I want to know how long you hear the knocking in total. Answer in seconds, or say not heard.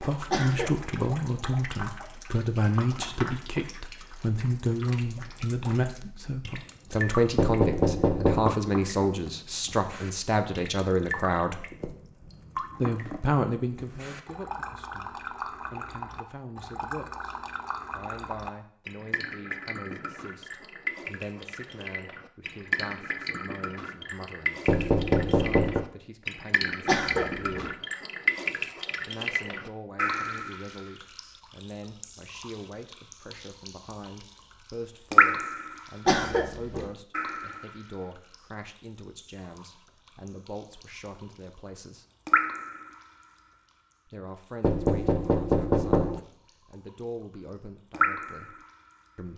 4 s.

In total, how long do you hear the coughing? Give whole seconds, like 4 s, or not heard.
2 s.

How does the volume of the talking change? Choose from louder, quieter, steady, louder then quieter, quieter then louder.
quieter.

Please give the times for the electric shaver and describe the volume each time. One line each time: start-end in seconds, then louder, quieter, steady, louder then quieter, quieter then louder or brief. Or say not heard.
not heard.